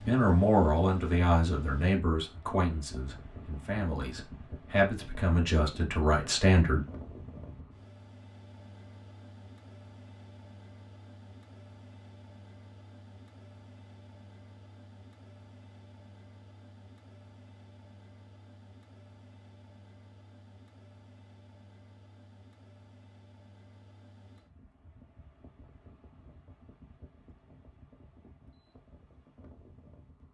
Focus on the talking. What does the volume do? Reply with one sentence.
The loudness of the talking goes down, then up.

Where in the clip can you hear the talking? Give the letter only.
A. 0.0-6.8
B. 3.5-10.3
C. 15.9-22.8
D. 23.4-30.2
A.